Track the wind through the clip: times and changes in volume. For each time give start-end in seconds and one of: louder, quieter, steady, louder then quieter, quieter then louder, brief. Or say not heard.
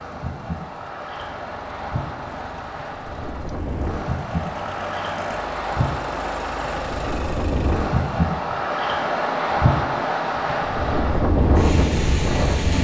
0.0-12.7 louder.